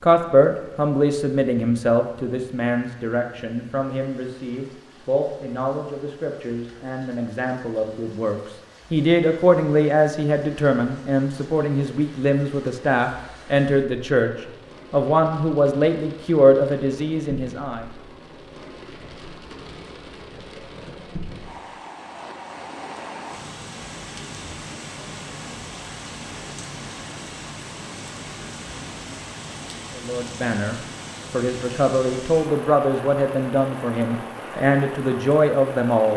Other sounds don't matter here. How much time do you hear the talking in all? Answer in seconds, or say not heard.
24 s.